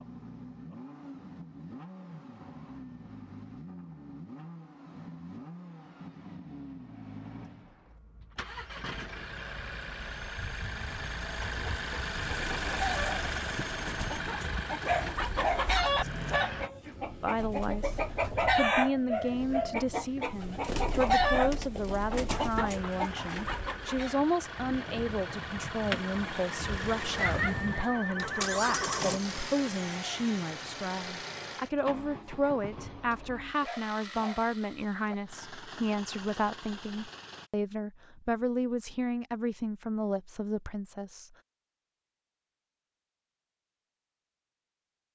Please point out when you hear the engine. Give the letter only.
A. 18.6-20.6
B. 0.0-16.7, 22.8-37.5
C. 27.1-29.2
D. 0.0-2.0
B.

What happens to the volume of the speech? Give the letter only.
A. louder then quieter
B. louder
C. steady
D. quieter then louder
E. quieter
C.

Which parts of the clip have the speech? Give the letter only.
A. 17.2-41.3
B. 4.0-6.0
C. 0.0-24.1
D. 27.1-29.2
A.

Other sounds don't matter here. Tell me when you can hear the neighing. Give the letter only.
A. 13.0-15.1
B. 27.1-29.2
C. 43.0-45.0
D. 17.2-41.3
B.